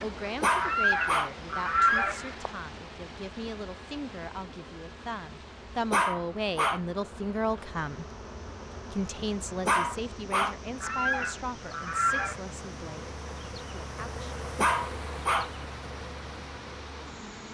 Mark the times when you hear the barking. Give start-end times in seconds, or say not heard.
0.4-1.3, 5.9-6.8, 9.7-10.6, 14.6-15.5.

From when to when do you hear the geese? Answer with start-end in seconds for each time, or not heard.
0.6-2.5, 10.8-12.4.